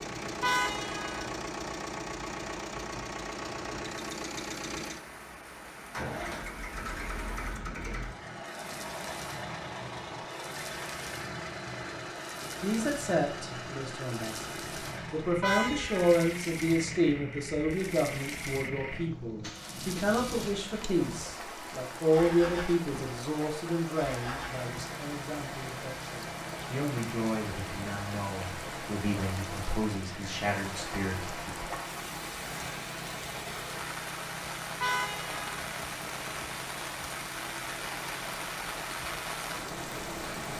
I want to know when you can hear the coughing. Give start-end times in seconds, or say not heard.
not heard.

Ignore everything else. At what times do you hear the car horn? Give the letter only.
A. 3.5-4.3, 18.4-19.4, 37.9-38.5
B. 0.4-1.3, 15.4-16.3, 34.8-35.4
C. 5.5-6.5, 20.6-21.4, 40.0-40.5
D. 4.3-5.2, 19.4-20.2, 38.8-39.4
B.